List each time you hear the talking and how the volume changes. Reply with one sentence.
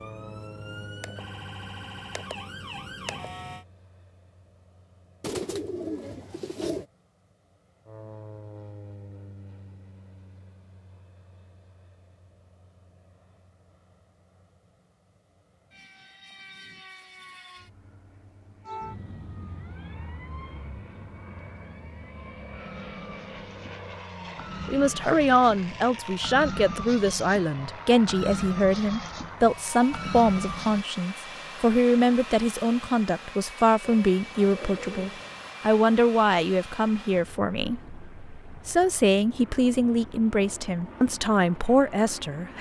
You can hear the talking from 24.6 to 42.5 s, at a steady volume.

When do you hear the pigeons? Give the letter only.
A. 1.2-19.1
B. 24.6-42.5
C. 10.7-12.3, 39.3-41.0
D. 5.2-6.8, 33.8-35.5
D.